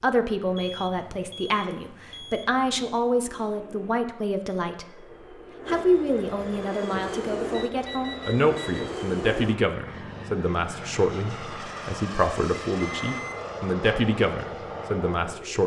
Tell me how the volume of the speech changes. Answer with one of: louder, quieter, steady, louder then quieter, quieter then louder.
steady.